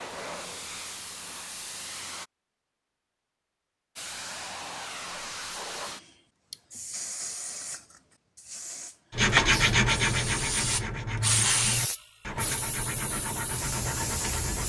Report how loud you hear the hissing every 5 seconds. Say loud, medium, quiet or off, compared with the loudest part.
medium, loud, loud.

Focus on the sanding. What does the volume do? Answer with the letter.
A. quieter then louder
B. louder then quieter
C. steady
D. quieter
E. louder
D.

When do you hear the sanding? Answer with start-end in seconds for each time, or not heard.
9.1-14.6.